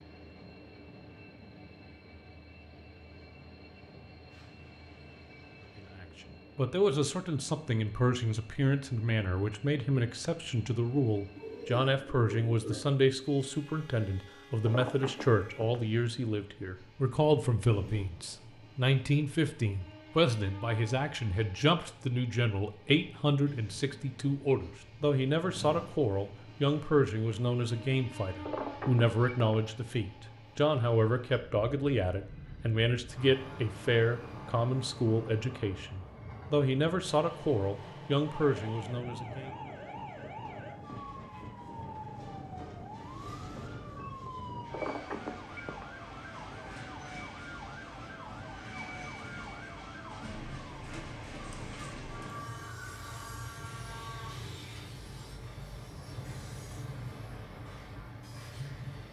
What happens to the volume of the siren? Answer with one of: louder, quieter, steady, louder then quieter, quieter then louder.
steady.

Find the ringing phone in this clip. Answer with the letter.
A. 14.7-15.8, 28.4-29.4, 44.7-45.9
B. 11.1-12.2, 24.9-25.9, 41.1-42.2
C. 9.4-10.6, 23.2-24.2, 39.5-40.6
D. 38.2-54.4
A.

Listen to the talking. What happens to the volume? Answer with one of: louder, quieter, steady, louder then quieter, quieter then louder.
steady.